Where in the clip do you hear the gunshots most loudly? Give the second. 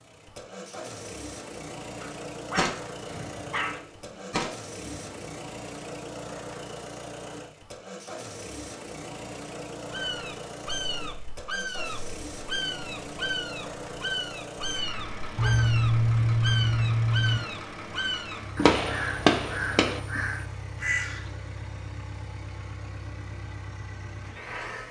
19 s.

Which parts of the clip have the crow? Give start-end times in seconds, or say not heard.
9.9-21.4.